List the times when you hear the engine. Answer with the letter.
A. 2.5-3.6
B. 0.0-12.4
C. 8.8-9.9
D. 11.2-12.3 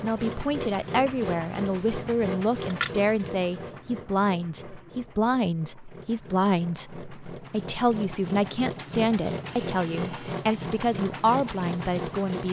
B.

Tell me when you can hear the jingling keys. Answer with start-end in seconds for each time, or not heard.
2.5-3.6.